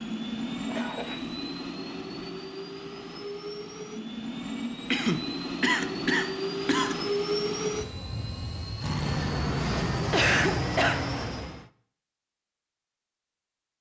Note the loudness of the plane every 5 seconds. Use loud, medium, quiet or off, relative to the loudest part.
medium, loud, loud.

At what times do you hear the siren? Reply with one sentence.
The siren can't be heard in this clip.